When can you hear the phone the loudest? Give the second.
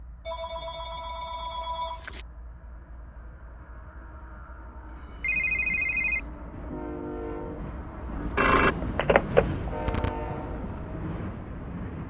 9 s.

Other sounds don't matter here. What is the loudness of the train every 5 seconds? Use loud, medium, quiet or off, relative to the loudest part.
quiet, loud, loud.